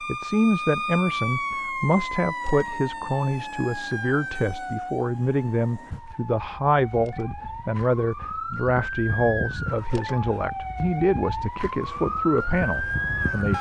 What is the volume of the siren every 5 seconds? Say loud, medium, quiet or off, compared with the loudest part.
loud, medium, loud.